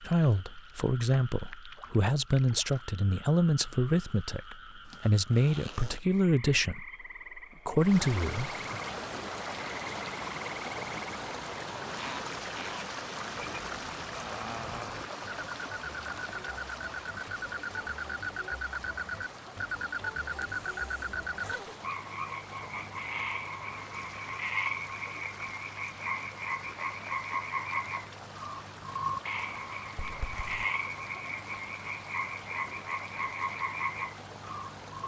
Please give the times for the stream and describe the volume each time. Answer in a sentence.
You can hear the stream from 7.8 to 35.0 s, getting quieter.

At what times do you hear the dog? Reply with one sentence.
The dog can't be heard in this clip.